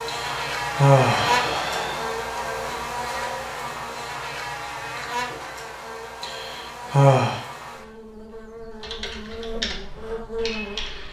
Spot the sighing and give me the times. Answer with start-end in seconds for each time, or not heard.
0.1-2.1, 6.2-7.4.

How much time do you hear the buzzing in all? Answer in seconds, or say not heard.
11 s.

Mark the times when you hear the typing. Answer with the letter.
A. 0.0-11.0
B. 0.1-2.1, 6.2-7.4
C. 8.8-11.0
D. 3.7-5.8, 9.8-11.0
C.